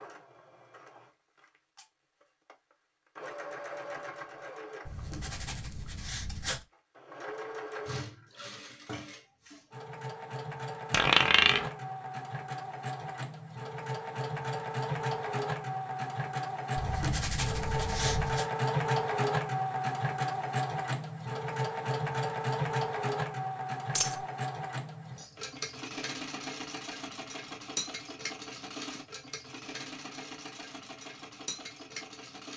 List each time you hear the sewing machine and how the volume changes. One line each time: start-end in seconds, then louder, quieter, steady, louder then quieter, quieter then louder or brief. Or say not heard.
0.0-32.5 louder then quieter.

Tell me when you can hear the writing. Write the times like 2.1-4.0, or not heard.
4.8-6.7, 16.8-18.4.